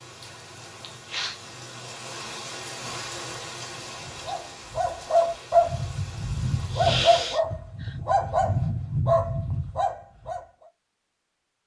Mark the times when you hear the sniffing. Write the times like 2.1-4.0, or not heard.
0.8-1.4, 6.7-8.0.